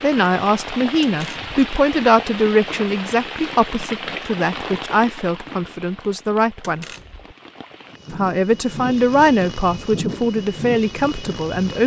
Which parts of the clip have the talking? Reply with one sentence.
You can hear the talking from 0.0 to 6.8 s and from 8.1 to 11.8 s.